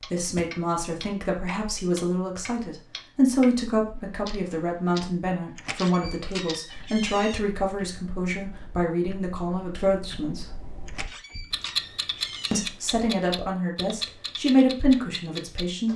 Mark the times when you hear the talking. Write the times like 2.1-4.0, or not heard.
0.0-10.6, 12.5-15.9.